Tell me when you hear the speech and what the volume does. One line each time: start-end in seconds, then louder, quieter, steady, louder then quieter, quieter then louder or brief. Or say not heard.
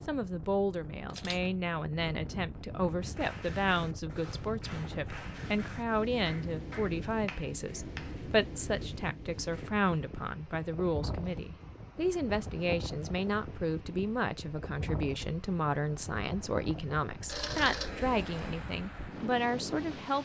0.1-20.2 steady.